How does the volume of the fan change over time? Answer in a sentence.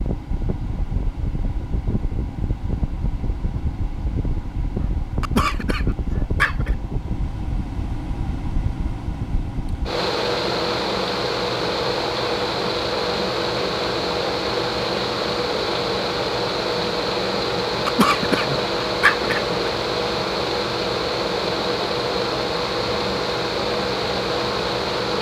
The volume of the fan goes up.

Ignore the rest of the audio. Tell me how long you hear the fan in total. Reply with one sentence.
The fan can be heard for 25 seconds in total.